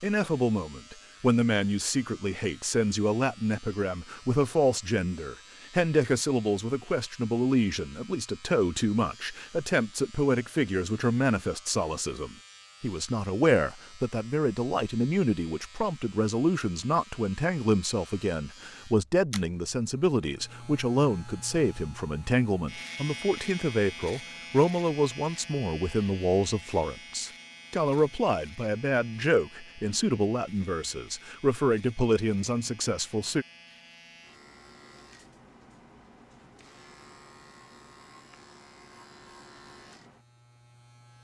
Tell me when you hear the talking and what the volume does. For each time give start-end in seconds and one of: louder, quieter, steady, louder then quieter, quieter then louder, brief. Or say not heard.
0.0-33.5 steady.